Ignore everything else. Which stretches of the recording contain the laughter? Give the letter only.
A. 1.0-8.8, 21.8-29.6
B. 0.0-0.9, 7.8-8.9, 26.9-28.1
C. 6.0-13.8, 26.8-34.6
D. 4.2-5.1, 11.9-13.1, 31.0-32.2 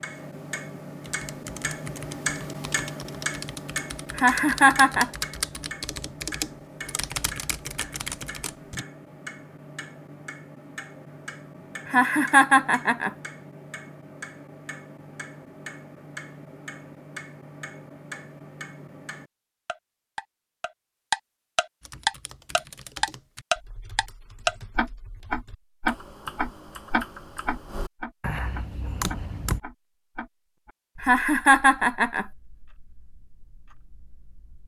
D.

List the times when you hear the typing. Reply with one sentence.
You can hear the typing from 1.0 to 8.8 s and from 21.8 to 29.6 s.